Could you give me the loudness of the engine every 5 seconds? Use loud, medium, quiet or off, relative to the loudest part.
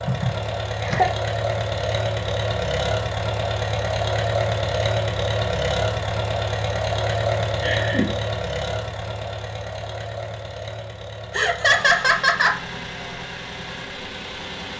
loud, loud, medium.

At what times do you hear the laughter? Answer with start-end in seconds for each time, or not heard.
0.1-1.1, 7.6-8.2, 11.3-12.6.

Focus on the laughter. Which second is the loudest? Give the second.
12 s.